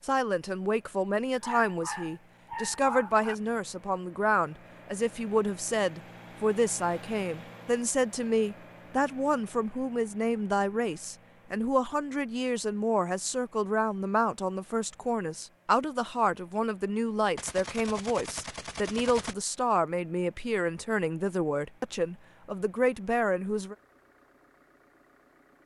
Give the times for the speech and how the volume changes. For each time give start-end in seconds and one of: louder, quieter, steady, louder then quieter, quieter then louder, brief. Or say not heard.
0.0-23.8 steady.